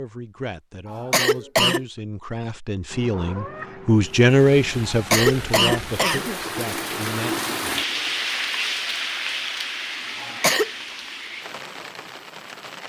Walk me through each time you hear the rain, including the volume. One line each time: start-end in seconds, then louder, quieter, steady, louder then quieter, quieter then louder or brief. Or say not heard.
4.2-12.8 louder then quieter.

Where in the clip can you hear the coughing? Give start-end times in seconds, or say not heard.
0.8-1.9, 4.8-6.6, 10.2-10.7.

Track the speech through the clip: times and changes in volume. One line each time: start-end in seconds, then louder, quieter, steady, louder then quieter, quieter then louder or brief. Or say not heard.
0.0-7.4 louder then quieter.